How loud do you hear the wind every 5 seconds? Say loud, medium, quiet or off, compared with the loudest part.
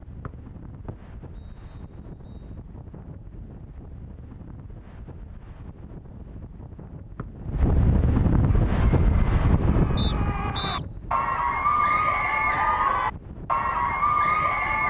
quiet, loud, medium.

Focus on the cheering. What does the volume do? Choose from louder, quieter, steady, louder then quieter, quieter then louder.
louder.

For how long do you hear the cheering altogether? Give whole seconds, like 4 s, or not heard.
6 s.